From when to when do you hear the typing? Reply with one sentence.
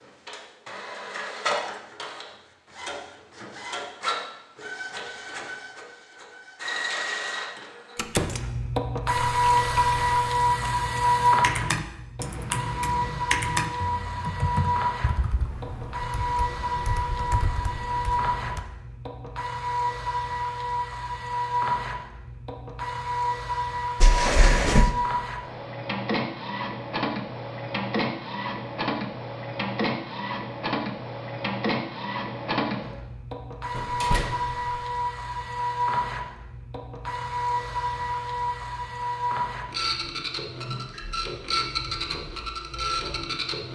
The typing can be heard from 9.2 to 18.6 s.